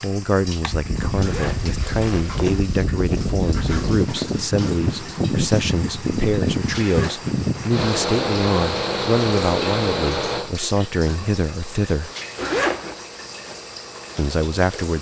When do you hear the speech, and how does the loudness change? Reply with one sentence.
The speech can be heard from 0.0 to 12.1 s, at a steady volume; and briefly from 14.2 to 14.9 s.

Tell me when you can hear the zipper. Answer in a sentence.
You can hear the zipper from 1.1 to 2.6 s, from 6.8 to 7.8 s and from 12.3 to 13.1 s.